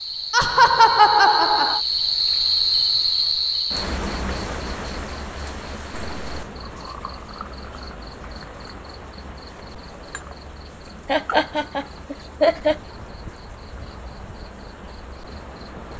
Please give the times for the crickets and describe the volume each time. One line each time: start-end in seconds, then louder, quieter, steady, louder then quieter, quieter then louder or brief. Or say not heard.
0.0-15.9 quieter.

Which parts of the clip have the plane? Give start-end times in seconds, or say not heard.
not heard.